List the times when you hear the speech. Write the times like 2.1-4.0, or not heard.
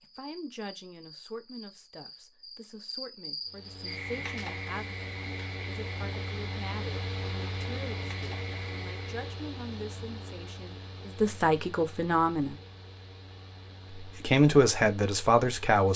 0.0-12.6, 14.0-15.9.